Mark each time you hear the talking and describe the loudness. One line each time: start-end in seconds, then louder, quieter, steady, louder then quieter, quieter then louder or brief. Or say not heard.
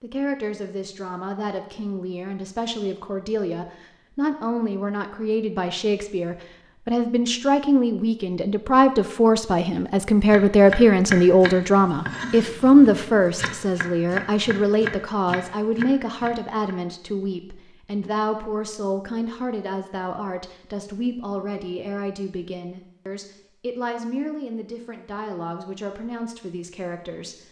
0.0-27.4 louder then quieter.